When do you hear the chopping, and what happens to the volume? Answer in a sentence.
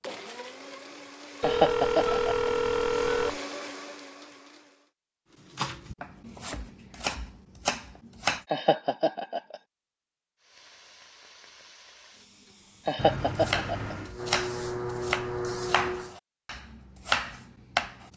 You can hear the chopping briefly from 5.5 to 8.4 s; and from 13.3 to 18.1 s, getting quieter then louder.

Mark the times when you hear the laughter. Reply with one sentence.
The laughter can be heard from 1.4 to 2.5 s, from 8.5 to 9.6 s and from 12.8 to 13.9 s.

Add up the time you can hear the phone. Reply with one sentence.
You can hear the phone for 3 seconds altogether.